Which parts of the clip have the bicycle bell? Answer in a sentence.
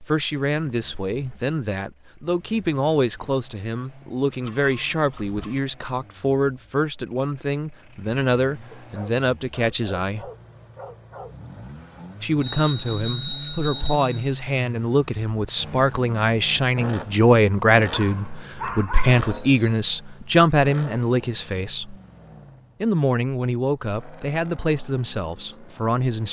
The bicycle bell can be heard from 4.4 to 5.6 s, from 12.4 to 14.1 s and from 19.4 to 19.9 s.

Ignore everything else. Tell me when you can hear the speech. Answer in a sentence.
You can hear the speech from 0.0 to 10.3 s, from 12.2 to 21.9 s and from 22.8 to 26.2 s.